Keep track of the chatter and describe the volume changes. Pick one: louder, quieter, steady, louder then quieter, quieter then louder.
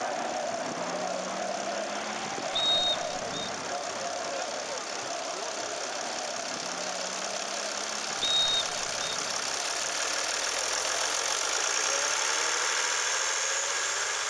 quieter.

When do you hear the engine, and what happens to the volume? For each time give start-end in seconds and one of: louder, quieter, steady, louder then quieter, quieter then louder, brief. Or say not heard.
0.0-14.2 louder.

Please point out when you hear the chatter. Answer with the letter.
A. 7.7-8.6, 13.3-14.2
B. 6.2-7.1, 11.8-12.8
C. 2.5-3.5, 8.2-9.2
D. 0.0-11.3
D.